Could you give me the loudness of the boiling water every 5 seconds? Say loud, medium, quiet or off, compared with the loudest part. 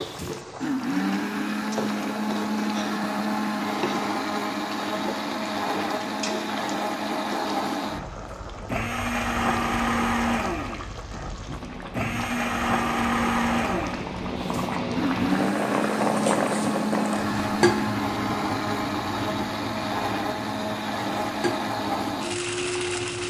medium, medium, medium, loud, medium.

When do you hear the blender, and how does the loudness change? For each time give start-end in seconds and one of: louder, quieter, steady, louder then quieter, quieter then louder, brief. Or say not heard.
0.0-23.2 steady.